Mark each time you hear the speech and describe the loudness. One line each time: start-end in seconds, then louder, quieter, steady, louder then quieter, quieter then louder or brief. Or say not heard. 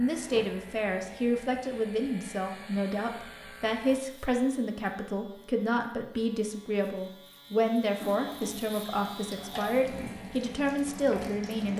0.0-11.7 steady.